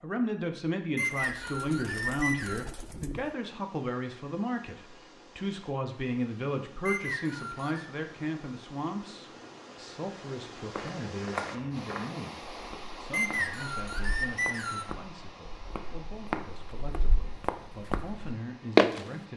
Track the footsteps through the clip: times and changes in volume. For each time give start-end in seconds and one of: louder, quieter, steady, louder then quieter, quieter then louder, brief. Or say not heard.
10.7-19.0 quieter then louder.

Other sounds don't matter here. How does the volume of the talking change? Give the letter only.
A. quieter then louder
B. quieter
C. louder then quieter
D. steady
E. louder
B.